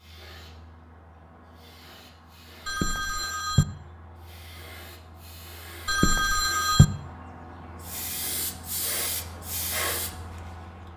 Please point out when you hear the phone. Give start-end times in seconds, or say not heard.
2.6-3.6, 5.8-6.8.